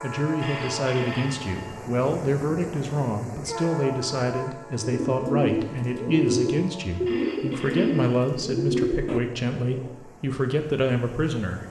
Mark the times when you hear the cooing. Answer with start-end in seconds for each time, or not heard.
4.8-9.2.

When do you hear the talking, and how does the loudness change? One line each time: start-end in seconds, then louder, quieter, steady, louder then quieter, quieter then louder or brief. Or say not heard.
0.0-11.6 steady.